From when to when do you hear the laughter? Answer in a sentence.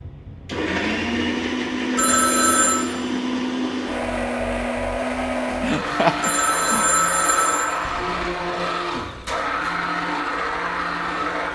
The laughter can be heard from 5.6 to 6.8 s.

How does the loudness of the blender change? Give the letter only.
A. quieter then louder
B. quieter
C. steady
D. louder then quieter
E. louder
C.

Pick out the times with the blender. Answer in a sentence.
You can hear the blender from 0.0 to 11.4 s.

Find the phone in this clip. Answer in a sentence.
You can hear the phone from 1.9 to 2.9 s and from 6.2 to 7.7 s.